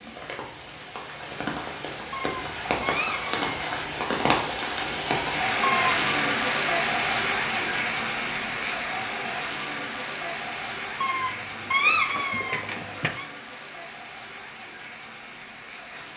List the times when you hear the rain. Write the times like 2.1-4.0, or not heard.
0.0-16.1.